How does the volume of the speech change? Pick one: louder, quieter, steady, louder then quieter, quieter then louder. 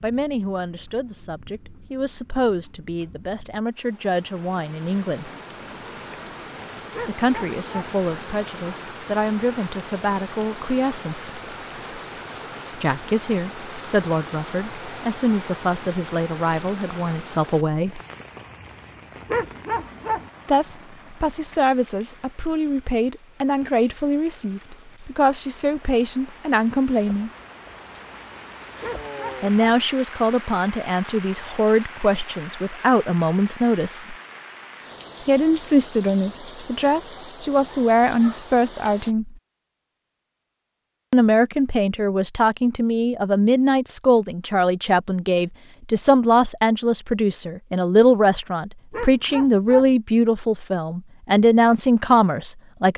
louder.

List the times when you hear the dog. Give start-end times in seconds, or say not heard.
6.9-8.0, 19.2-20.3, 28.8-29.8, 48.9-50.0.